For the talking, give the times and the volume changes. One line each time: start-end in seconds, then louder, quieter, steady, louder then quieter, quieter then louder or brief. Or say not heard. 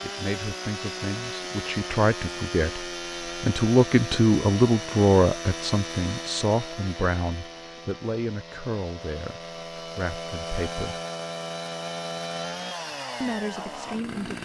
0.0-11.0 louder then quieter
13.2-14.4 brief.